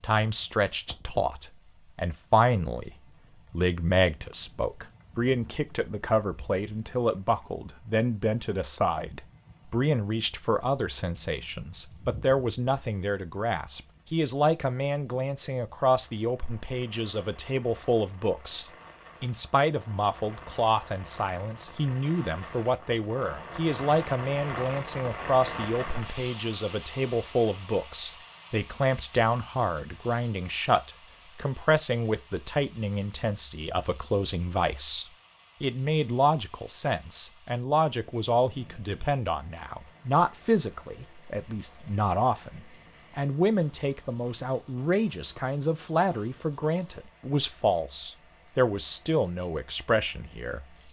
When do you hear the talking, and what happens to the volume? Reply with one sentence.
You can hear the talking from 0.0 to 50.6 s, at a steady volume.